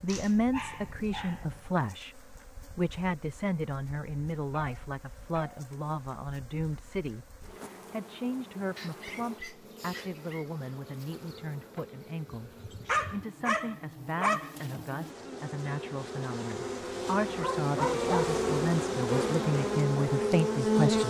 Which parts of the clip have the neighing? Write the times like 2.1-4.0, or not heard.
not heard.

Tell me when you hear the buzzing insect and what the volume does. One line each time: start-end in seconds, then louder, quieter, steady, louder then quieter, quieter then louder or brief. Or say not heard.
0.0-21.0 louder.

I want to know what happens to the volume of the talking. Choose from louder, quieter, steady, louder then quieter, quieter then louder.
quieter then louder.